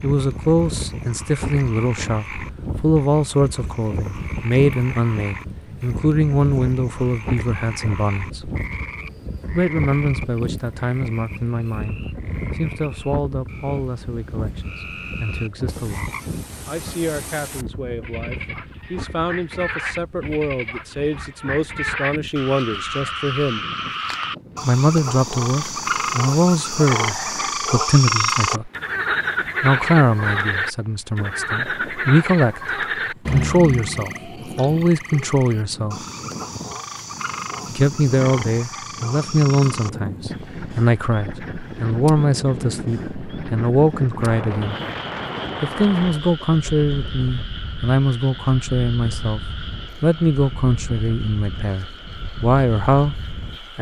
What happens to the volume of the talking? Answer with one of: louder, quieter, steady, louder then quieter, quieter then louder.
quieter then louder.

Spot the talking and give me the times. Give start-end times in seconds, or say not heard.
0.0-8.5, 9.5-23.6, 24.6-28.7, 29.6-36.0, 37.7-44.8, 45.6-53.7.